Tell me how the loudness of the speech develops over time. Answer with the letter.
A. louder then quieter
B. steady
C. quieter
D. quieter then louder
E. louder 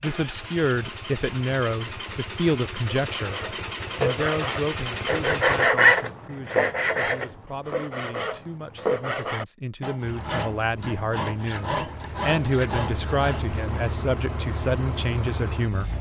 D.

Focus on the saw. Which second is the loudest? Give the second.
6 s.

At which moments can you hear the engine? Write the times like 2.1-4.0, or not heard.
0.0-5.7, 10.0-15.9.